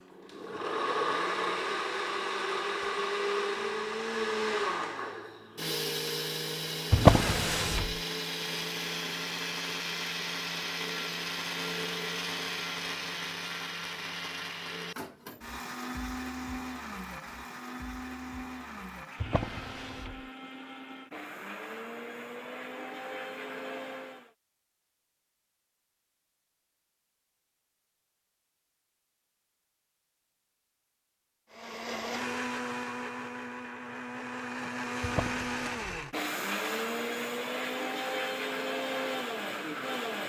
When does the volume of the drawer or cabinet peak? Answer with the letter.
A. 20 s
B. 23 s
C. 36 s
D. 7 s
D.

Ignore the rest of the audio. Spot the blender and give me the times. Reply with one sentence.
The blender can be heard from 0.0 to 24.3 s and from 31.5 to 40.2 s.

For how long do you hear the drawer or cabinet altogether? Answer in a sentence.
You can hear the drawer or cabinet for 3 seconds altogether.